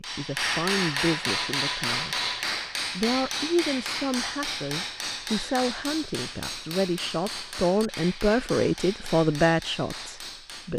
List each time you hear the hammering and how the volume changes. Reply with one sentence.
You can hear the hammering from 0.0 to 10.7 s, getting quieter.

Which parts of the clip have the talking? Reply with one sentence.
The talking can be heard from 0.0 to 2.2 s and from 3.0 to 10.7 s.